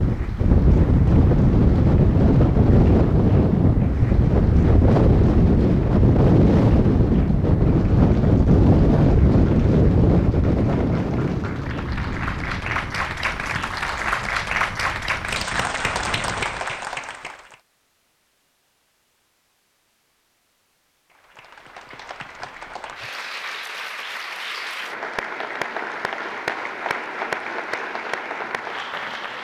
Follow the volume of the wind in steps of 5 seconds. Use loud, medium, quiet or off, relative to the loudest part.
loud, loud, medium, quiet, off, off.